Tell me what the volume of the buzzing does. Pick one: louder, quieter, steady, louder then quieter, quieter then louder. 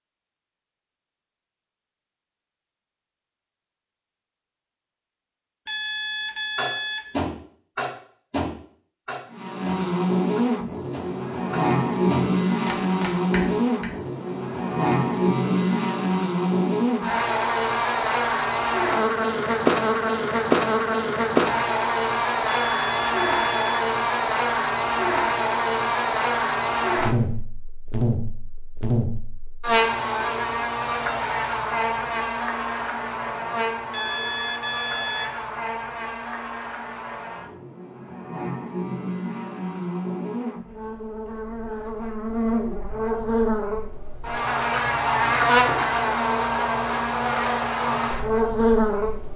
quieter then louder.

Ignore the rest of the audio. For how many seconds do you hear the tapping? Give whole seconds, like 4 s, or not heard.
7 s.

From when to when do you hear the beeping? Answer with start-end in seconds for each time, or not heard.
5.7-7.1, 22.6-23.9, 33.9-35.4.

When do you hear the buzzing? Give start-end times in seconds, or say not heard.
9.3-49.3.